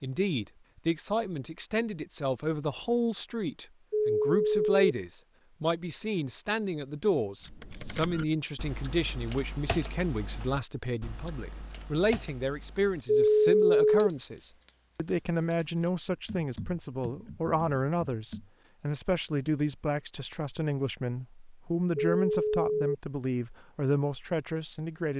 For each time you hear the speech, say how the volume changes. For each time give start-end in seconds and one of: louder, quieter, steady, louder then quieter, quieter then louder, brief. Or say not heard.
0.0-25.1 steady.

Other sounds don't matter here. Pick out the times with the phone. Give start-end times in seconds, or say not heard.
3.9-4.7, 13.1-14.1, 21.9-22.9.